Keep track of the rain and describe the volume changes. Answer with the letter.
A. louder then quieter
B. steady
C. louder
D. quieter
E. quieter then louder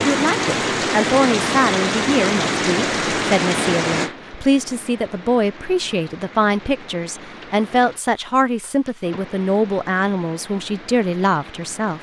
D.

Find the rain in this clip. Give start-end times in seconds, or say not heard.
0.0-11.9.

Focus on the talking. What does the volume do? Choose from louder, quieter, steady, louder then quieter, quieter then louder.
steady.